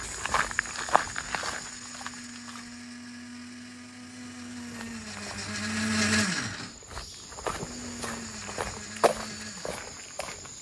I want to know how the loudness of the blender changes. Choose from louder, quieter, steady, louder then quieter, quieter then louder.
louder then quieter.